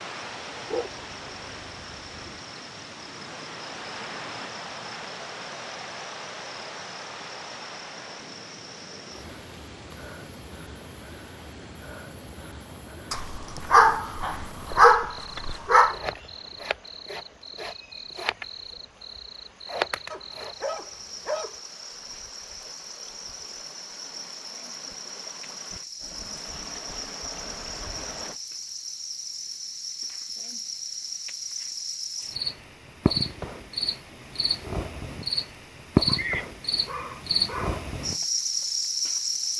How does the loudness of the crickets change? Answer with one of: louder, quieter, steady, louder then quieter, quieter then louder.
louder.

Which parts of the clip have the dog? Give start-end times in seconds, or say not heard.
0.7-2.4, 13.1-15.9, 20.1-21.6, 36.0-37.9.